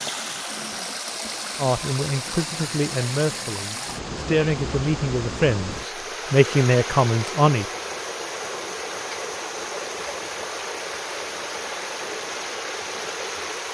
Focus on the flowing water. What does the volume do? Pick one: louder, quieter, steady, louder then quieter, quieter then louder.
steady.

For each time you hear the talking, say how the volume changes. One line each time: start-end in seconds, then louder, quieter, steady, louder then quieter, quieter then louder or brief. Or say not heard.
1.6-7.7 louder.